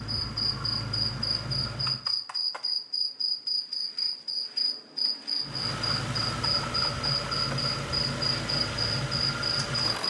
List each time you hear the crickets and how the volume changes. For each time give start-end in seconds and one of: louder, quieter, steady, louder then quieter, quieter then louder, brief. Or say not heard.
0.0-10.0 steady.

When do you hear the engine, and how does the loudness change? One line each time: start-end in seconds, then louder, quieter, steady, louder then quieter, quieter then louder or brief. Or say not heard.
0.0-2.1 brief
5.4-10.0 steady.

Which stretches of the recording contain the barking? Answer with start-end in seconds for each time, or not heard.
not heard.